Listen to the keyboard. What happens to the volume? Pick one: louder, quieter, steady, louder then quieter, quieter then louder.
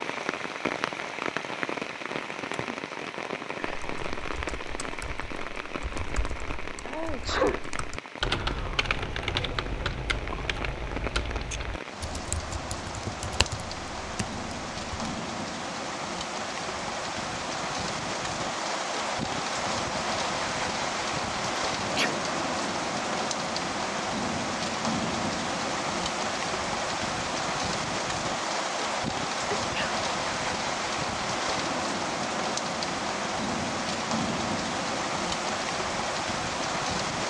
louder then quieter.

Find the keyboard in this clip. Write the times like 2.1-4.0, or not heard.
3.6-14.9.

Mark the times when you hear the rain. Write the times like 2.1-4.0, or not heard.
0.0-37.2.